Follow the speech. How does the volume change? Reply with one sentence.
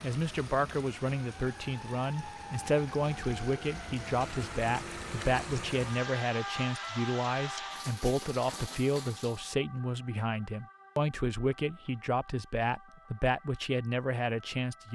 The loudness of the speech stays about the same.